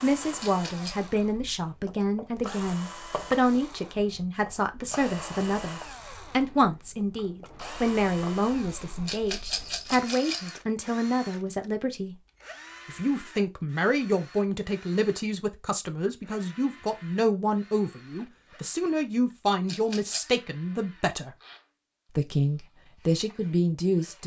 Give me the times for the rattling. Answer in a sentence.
The rattling can be heard from 0.4 to 0.9 s, from 9.1 to 10.5 s and from 19.6 to 20.4 s.